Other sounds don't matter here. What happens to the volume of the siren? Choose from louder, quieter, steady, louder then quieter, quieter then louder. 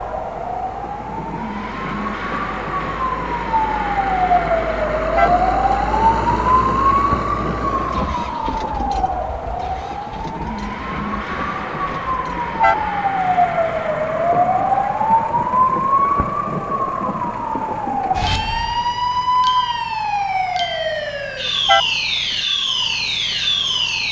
steady.